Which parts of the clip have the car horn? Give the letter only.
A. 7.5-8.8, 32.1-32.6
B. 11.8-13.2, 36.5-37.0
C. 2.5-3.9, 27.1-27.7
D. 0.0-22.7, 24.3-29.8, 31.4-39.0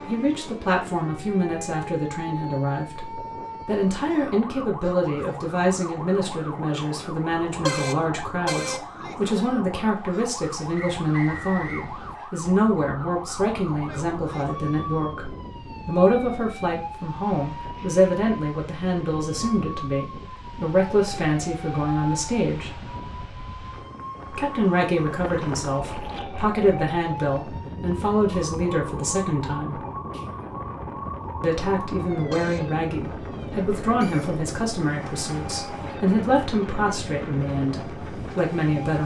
A.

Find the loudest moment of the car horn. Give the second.
8 s.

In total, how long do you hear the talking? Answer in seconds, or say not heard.
36 s.